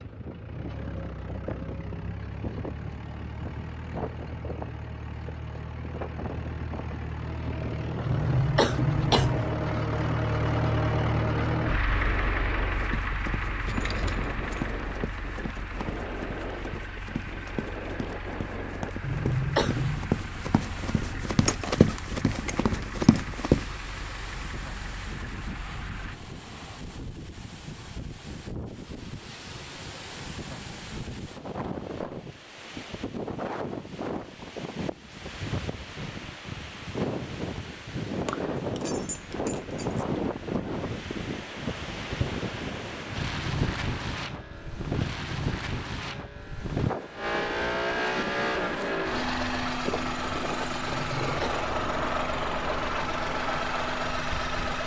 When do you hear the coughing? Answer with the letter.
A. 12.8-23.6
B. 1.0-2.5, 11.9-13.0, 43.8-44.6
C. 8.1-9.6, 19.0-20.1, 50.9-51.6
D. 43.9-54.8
C.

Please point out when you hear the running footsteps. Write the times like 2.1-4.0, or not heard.
12.8-23.6.